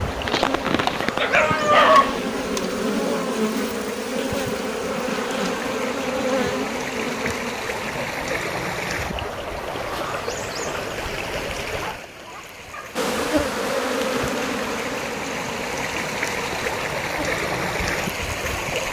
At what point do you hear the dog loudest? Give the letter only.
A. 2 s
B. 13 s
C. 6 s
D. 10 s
A.